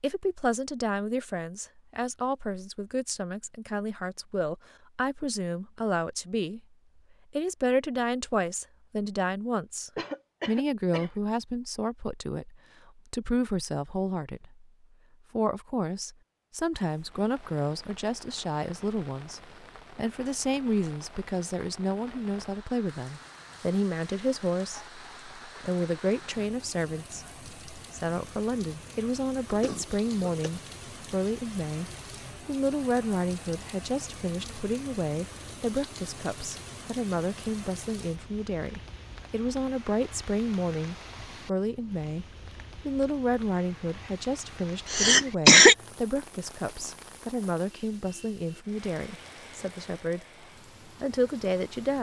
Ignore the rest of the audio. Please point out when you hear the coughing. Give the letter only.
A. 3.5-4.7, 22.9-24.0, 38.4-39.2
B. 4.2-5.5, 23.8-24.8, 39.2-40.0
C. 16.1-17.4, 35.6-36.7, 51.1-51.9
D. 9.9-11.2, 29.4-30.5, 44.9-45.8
D.